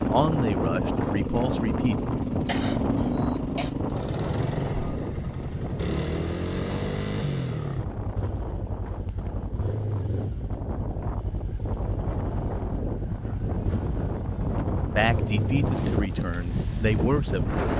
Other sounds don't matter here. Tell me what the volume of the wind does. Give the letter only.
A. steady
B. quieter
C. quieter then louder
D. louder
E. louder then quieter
C.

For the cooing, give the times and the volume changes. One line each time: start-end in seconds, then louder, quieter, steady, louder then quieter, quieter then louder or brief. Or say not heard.
not heard.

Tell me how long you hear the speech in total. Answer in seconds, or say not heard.
5 s.